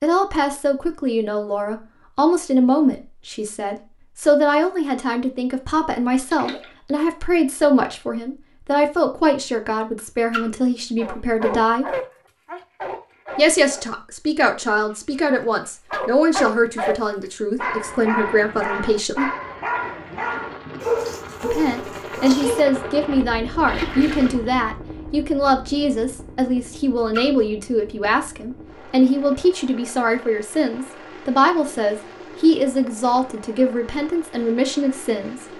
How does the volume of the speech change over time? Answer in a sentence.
The volume of the speech stays about the same.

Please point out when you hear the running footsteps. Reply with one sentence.
The running footsteps can't be heard in this clip.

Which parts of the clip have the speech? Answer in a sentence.
The speech can be heard from 0.0 to 11.8 s, from 13.3 to 19.3 s and from 21.4 to 35.5 s.